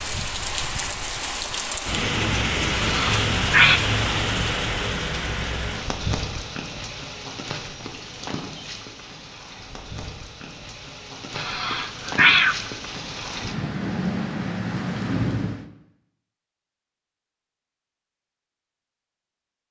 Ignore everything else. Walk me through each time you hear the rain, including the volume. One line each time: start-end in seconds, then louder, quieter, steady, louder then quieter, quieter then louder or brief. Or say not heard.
0.0-15.7 quieter then louder.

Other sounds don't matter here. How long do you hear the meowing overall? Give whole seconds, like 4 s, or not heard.
2 s.